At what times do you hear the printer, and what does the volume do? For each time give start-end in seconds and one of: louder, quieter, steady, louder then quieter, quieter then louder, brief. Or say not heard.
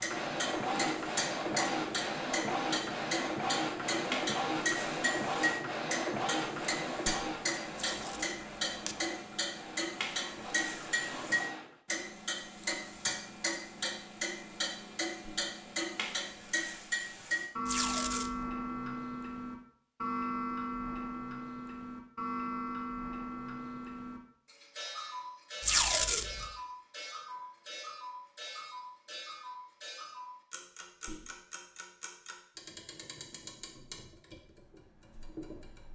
0.0-11.8 quieter.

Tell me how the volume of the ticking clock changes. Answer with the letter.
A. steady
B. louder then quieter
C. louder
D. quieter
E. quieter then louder
D.